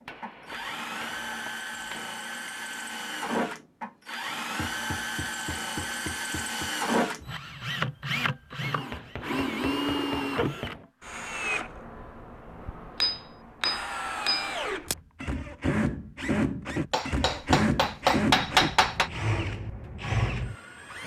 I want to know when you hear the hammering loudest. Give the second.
18 s.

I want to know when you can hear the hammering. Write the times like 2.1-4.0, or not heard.
0.1-2.1, 4.5-6.7, 8.9-10.8, 13.0-14.9, 16.9-19.1.